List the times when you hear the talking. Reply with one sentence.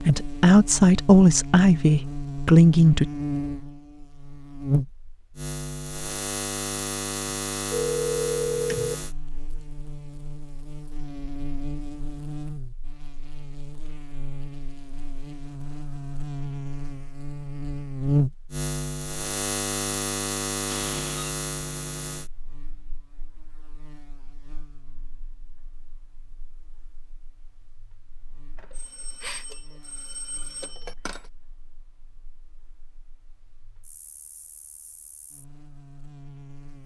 You can hear the talking from 0.0 to 3.1 s.